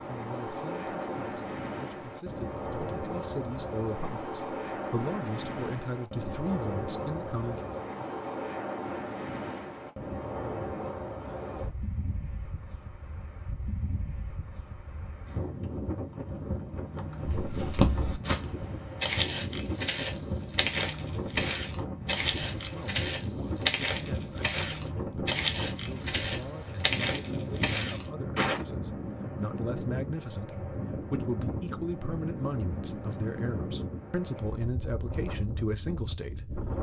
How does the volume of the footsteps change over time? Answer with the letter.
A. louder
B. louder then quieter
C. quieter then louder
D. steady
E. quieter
D.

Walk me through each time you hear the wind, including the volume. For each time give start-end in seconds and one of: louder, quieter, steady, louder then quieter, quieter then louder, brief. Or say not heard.
0.0-36.7 steady.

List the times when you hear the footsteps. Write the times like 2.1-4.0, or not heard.
17.2-28.6.